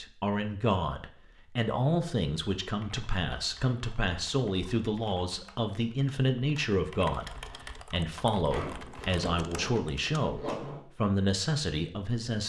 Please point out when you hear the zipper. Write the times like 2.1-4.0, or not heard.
8.4-10.8.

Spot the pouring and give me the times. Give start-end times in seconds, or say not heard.
not heard.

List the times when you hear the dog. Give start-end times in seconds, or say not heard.
not heard.